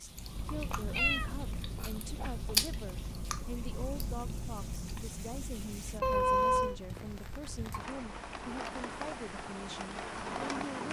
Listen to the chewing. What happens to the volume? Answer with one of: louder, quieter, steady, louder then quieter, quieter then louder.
louder then quieter.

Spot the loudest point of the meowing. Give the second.
6 s.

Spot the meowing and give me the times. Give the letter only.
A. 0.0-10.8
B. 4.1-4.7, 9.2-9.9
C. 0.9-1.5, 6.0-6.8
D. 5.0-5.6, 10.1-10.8
C.